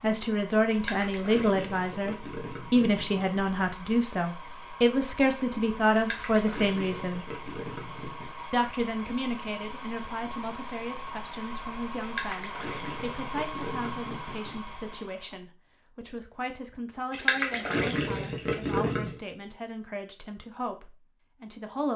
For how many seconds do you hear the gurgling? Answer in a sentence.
You can hear the gurgling for 10 seconds altogether.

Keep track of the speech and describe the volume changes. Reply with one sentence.
The loudness of the speech goes down.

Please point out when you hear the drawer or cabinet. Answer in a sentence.
You can't hear the drawer or cabinet here.